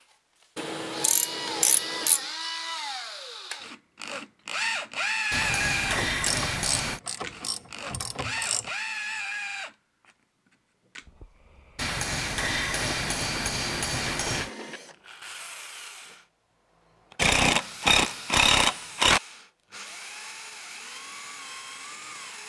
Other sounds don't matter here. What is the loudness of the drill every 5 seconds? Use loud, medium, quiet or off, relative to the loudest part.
loud, loud, quiet, quiet, medium.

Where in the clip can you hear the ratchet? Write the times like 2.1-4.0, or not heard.
0.6-2.2, 6.0-8.6, 12.8-14.8, 17.1-19.2.